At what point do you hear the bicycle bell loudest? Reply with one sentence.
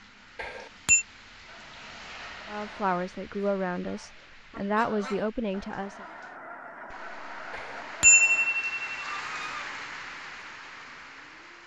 The volume of the bicycle bell peaks at 8 seconds.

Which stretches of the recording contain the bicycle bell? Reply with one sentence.
You can hear the bicycle bell from 0.3 to 1.1 s and from 7.5 to 8.9 s.